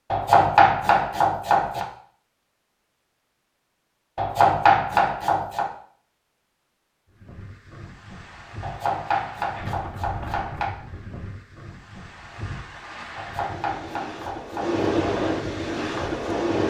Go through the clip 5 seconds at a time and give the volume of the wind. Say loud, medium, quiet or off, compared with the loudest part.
off, quiet, medium, loud.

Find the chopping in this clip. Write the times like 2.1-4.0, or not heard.
0.1-1.9, 4.2-5.7, 8.6-10.8, 13.2-14.8.